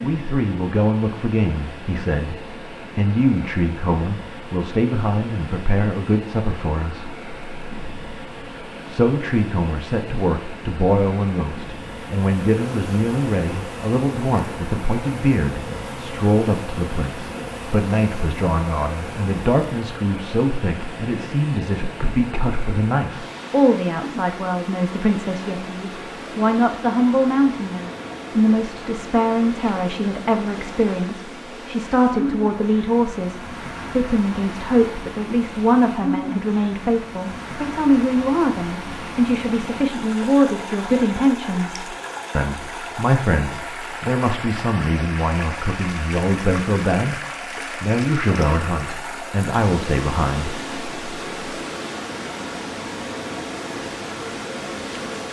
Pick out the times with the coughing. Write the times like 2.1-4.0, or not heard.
not heard.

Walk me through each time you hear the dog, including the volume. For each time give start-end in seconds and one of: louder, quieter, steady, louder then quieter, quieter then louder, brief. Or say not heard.
not heard.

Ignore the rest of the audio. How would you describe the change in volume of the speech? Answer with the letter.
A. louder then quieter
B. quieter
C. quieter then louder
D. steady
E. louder
D.